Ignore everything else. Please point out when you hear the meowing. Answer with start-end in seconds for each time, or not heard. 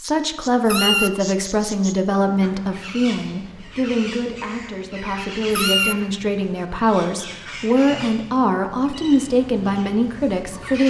0.7-1.1, 5.5-6.0.